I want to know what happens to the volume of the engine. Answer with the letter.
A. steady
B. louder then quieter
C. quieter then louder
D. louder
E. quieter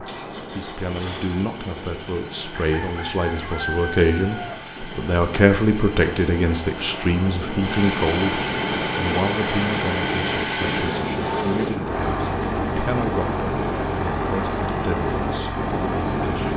D.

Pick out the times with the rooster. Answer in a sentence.
You can hear the rooster from 2.5 to 4.5 s.